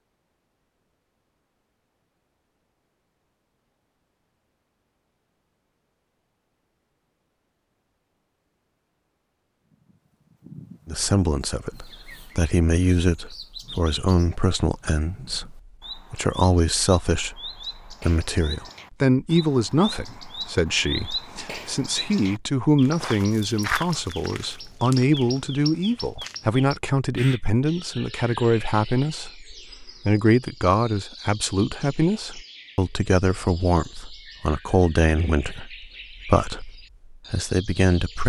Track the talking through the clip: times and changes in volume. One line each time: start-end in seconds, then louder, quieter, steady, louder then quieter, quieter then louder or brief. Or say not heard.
10.8-38.2 steady.